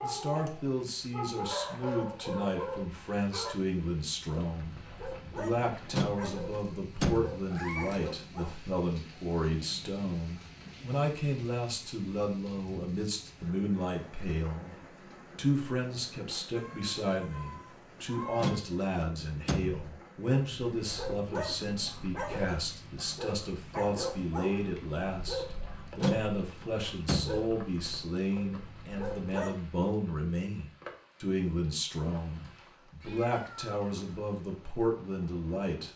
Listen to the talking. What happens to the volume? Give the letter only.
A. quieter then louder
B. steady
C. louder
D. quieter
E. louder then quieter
B.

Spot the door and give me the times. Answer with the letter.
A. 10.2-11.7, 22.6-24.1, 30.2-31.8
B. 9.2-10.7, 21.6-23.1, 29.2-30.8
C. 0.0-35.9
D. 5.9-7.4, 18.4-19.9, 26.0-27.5
D.